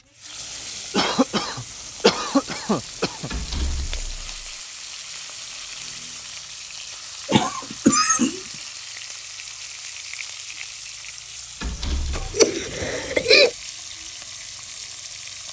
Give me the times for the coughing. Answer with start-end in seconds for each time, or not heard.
0.9-3.3, 7.2-8.4, 12.1-13.5.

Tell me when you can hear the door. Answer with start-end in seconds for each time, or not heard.
3.3-4.5, 11.6-12.3.